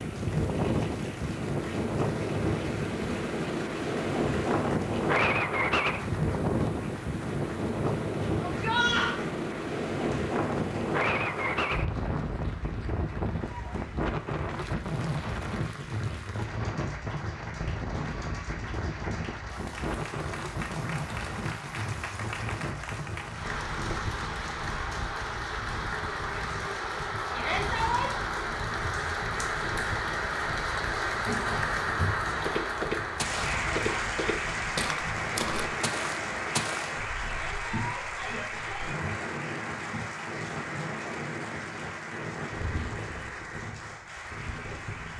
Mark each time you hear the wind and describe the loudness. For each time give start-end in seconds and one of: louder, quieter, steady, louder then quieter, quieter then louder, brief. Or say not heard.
0.0-45.1 quieter.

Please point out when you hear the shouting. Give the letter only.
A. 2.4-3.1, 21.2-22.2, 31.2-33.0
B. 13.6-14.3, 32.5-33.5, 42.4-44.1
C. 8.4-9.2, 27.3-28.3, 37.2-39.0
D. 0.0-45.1
C.